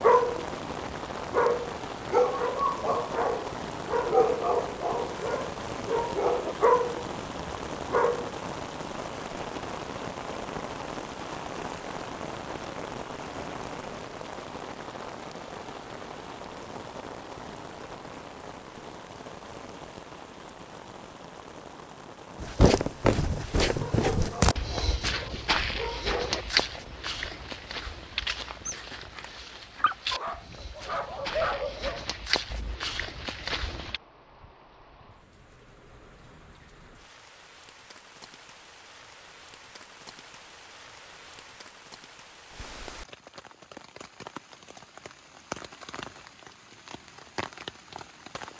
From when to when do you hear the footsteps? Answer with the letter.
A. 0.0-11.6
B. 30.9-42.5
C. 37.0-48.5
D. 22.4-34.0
D.